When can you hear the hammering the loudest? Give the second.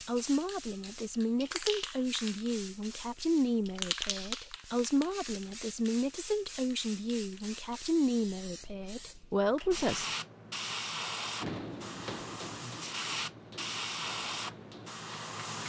12 s.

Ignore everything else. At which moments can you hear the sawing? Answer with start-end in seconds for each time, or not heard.
not heard.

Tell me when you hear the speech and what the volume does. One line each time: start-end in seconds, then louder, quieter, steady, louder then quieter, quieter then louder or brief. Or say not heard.
0.1-10.1 steady.